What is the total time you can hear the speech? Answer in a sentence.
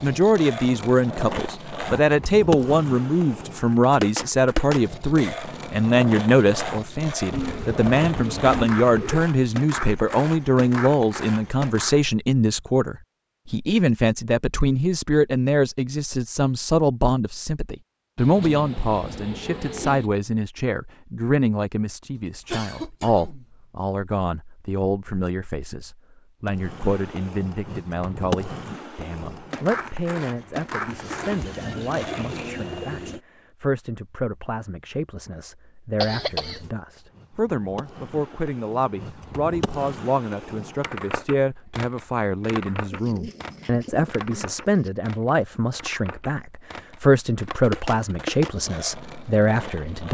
The speech can be heard for 50 seconds in total.